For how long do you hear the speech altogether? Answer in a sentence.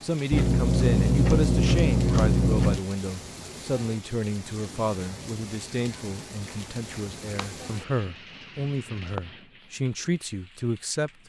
The speech can be heard for 11 seconds in total.